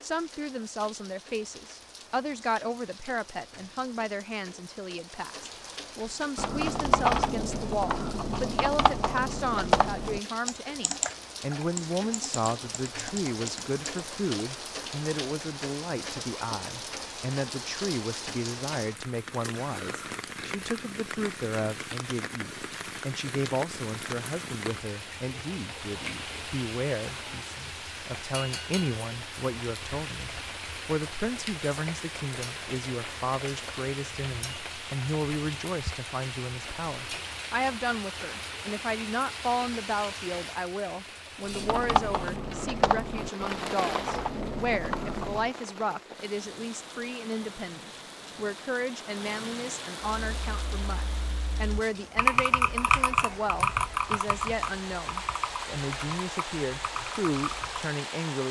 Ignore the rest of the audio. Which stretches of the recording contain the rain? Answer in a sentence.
You can hear the rain from 0.0 to 58.4 s.